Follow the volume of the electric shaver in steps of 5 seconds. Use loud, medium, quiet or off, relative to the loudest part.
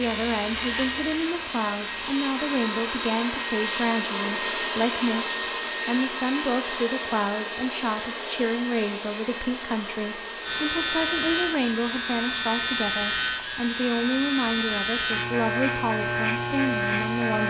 medium, off, loud, loud.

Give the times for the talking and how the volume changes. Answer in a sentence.
You can hear the talking from 0.0 to 17.4 s, at a steady volume.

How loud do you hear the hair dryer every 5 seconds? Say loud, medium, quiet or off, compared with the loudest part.
loud, loud, medium, medium.